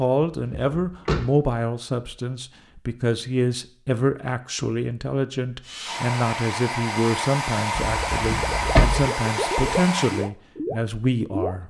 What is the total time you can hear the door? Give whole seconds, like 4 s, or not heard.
2 s.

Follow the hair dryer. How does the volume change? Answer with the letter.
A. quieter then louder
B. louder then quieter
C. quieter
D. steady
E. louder
D.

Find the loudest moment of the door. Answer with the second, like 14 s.
9 s.